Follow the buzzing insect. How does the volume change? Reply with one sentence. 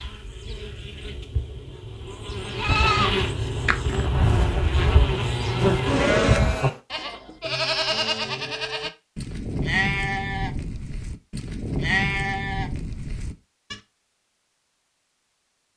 The loudness of the buzzing insect goes up.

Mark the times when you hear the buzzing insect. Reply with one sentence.
You can hear the buzzing insect from 0.0 to 6.8 s.